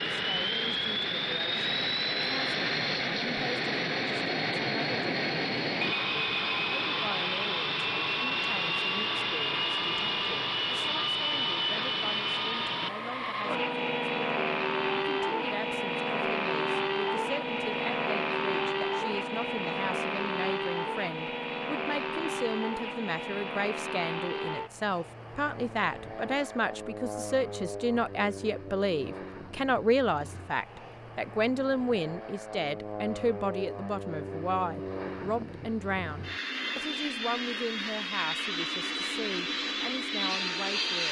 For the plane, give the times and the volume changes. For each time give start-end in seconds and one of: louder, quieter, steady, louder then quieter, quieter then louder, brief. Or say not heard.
0.0-41.0 quieter then louder.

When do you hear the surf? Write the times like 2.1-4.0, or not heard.
not heard.